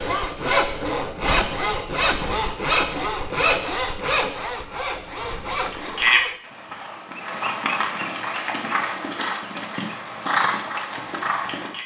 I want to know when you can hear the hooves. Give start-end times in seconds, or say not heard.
5.6-11.8.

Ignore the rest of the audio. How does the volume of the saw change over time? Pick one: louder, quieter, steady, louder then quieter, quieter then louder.
quieter.